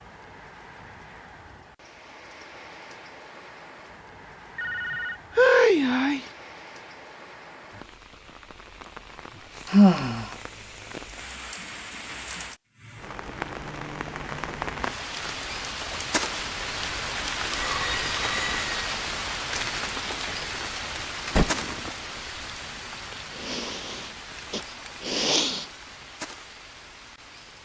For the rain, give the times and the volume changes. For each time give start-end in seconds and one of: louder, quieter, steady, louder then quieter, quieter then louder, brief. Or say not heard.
0.0-27.6 louder then quieter.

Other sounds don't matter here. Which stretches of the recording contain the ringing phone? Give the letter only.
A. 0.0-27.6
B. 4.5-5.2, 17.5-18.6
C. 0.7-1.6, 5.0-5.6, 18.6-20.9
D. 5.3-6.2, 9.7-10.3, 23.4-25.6
B.